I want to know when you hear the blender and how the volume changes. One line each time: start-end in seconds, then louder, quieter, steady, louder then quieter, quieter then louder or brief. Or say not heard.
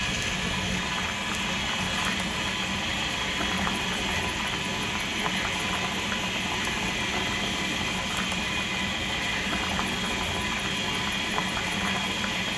0.0-12.5 steady.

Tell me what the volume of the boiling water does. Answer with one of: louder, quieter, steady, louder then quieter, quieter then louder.
steady.